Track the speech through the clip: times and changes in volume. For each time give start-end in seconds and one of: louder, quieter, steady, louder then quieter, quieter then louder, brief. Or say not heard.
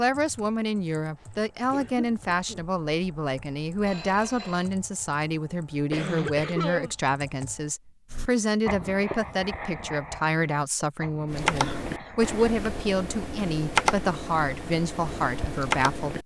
0.0-16.2 steady.